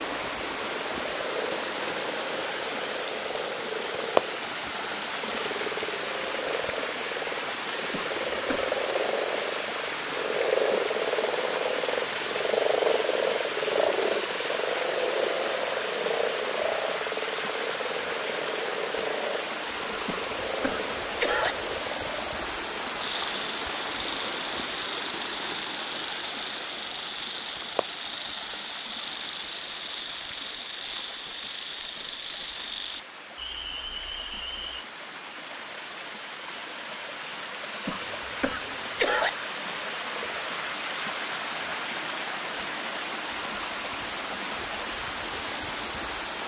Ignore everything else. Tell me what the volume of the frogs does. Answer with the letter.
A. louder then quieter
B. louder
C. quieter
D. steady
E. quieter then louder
A.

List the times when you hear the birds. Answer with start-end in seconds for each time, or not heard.
not heard.